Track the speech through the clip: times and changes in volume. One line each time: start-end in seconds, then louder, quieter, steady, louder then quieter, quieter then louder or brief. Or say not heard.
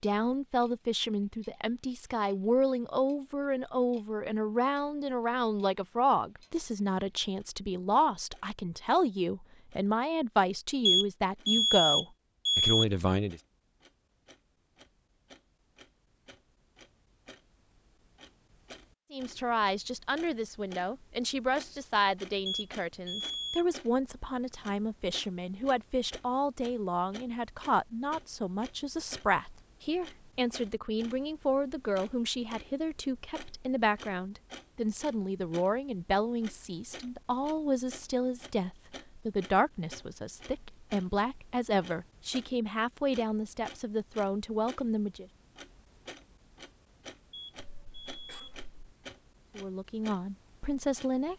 0.0-13.4 steady
19.1-45.2 steady
49.5-51.3 brief.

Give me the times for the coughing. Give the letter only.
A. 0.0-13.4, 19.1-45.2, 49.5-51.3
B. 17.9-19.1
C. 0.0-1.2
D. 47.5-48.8
D.